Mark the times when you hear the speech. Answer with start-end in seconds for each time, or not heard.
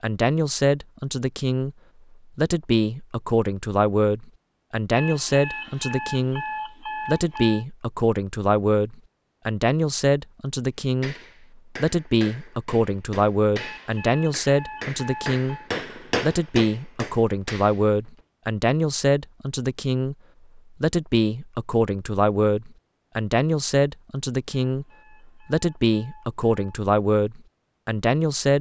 0.0-1.8, 2.4-6.5, 7.0-11.2, 11.8-15.6, 16.2-24.9, 25.4-28.5.